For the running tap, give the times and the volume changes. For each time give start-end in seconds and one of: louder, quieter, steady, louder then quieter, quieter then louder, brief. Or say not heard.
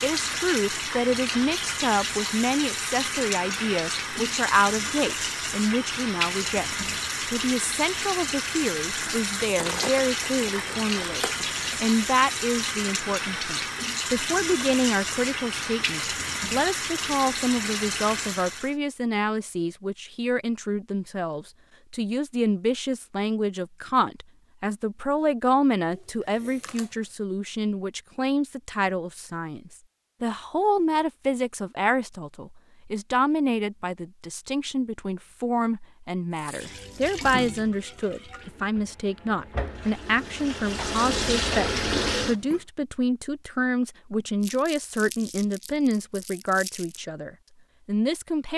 0.0-18.8 steady
36.4-42.6 quieter then louder.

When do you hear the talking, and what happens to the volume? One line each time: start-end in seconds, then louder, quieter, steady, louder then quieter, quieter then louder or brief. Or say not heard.
0.0-48.5 steady.